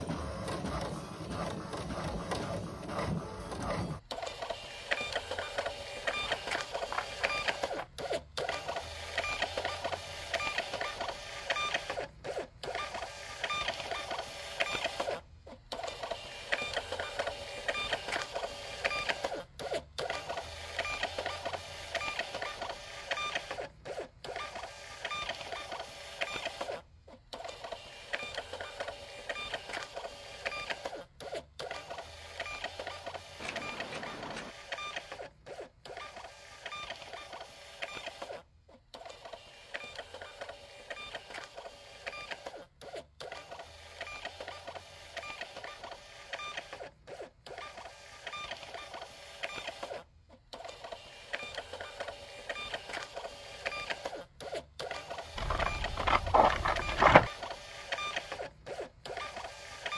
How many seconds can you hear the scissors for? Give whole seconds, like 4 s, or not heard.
5 s.